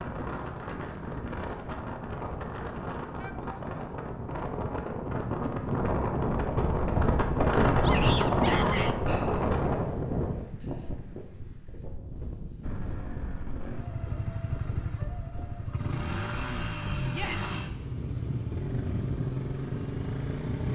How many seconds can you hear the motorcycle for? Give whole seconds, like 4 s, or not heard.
8 s.